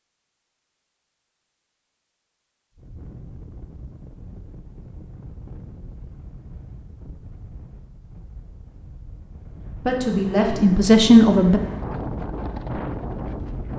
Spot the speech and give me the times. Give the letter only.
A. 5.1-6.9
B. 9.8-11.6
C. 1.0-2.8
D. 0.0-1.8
B.